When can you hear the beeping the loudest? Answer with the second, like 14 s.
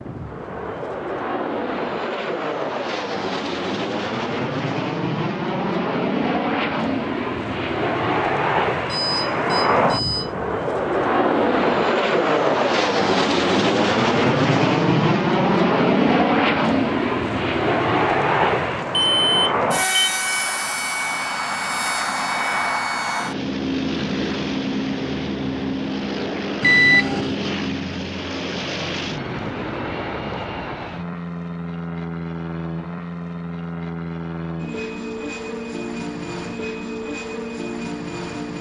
27 s.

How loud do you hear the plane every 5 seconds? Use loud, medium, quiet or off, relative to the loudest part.
medium, loud, loud, loud, medium, medium, medium, medium.